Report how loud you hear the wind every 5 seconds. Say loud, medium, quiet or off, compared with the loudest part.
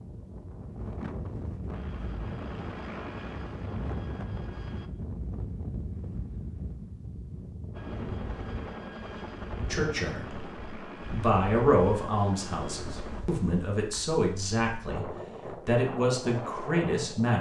loud, loud, medium, loud.